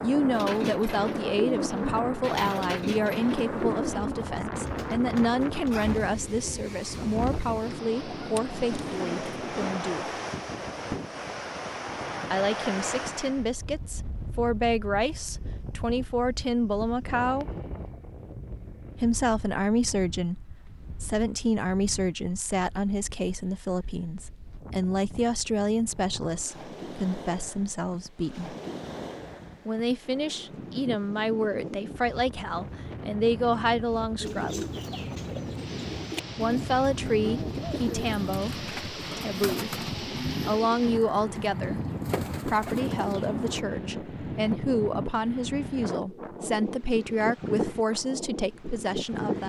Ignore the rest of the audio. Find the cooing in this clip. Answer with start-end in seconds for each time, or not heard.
0.3-9.8, 34.2-43.6.